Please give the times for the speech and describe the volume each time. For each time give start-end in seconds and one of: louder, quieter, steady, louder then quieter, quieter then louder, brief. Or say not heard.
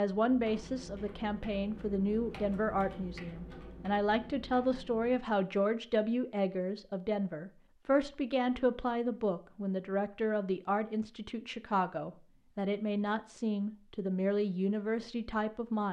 0.0-15.8 steady.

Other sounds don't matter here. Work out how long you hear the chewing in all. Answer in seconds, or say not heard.
not heard.